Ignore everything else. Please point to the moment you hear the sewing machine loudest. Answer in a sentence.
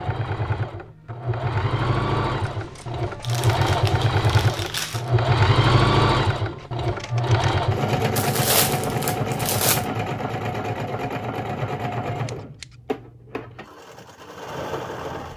The volume of the sewing machine peaks at 6 seconds.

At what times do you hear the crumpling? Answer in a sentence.
The crumpling can be heard from 3.2 to 5.1 s and from 8.2 to 9.8 s.